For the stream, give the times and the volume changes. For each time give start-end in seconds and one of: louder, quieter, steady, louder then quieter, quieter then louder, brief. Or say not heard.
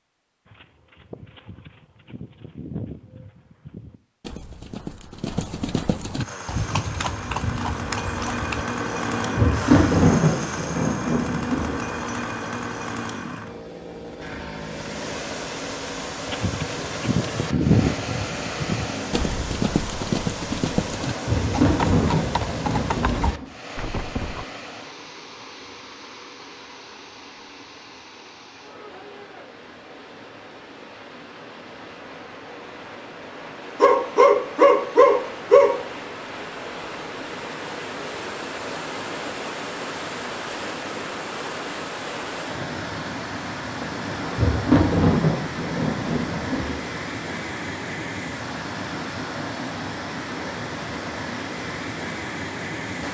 14.5-53.0 quieter then louder.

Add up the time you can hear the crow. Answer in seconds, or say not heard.
not heard.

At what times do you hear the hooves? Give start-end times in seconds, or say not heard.
0.5-8.7, 16.2-24.4.